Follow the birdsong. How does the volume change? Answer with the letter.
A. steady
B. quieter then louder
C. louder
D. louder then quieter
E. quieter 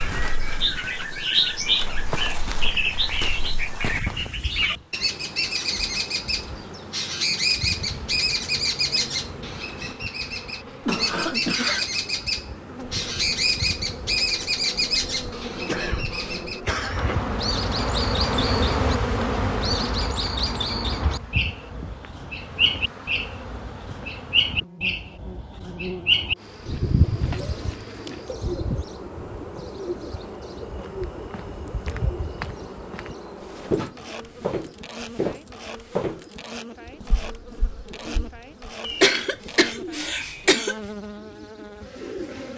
E.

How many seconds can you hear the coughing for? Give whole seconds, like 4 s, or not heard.
5 s.